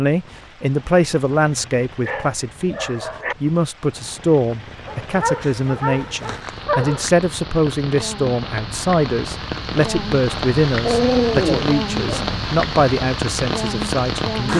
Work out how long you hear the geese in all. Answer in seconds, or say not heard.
not heard.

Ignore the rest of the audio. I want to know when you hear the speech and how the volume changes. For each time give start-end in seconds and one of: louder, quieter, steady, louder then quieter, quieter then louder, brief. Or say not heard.
0.0-14.5 steady.